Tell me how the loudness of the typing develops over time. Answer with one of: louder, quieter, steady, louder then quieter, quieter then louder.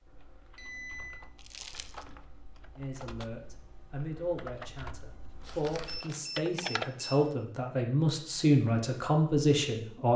louder.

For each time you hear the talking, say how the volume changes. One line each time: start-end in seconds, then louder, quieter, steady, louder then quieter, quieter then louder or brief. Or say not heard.
2.8-10.1 louder.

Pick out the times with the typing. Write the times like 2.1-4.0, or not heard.
0.0-6.9.